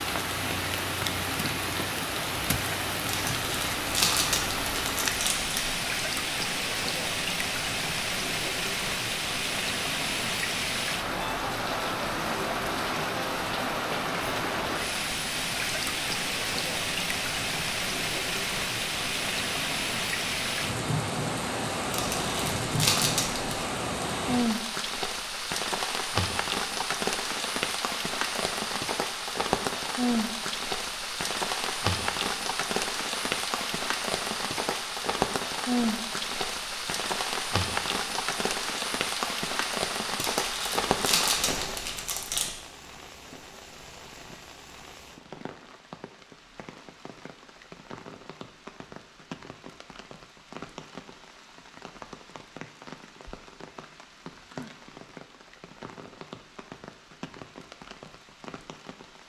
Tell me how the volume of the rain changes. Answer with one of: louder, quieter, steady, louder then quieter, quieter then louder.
quieter.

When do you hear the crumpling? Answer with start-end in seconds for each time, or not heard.
3.0-5.7, 21.9-23.6, 40.4-42.5.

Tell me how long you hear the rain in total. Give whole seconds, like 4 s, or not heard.
59 s.